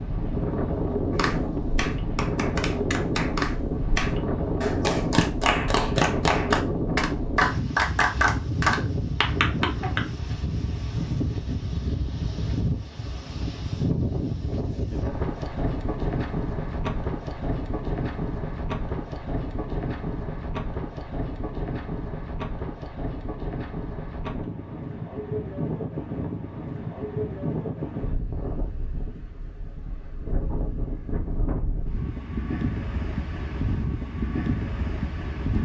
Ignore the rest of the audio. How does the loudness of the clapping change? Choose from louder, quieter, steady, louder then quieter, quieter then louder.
louder.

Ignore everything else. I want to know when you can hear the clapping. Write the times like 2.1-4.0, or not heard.
1.1-10.0.